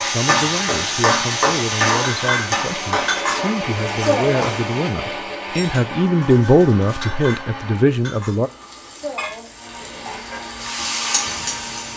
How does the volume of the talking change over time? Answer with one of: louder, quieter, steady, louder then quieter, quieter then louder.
louder.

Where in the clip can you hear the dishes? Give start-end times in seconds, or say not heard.
2.1-10.6.